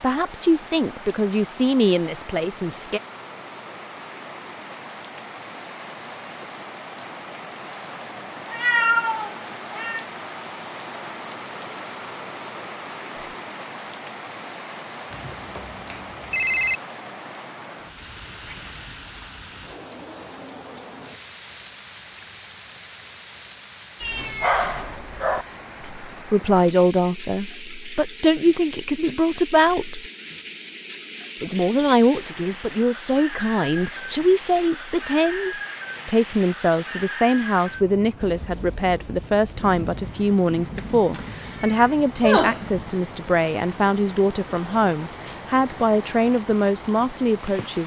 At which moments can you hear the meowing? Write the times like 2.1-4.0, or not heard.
8.5-10.1, 24.0-25.4, 41.1-42.6.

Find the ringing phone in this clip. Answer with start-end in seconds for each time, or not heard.
15.1-16.8.